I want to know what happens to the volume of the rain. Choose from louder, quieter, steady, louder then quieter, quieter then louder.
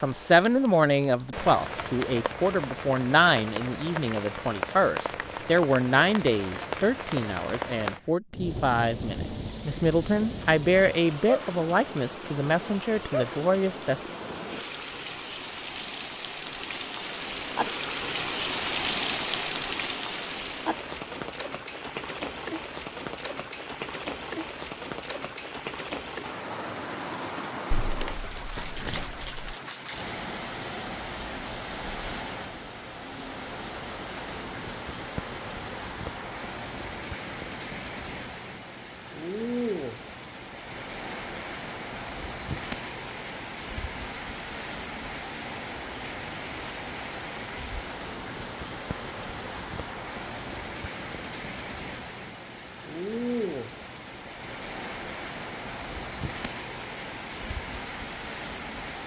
steady.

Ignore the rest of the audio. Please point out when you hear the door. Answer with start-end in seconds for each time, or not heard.
27.7-29.4.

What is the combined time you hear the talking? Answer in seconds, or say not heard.
14 s.